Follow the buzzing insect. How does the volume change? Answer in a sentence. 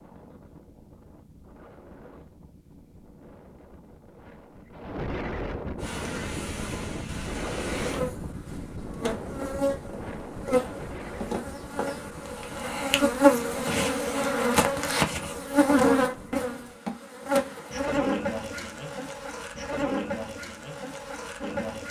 The loudness of the buzzing insect goes up, then down.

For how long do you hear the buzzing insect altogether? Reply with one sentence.
You can hear the buzzing insect for 16 seconds altogether.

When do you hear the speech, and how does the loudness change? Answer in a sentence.
The speech can't be heard in this clip.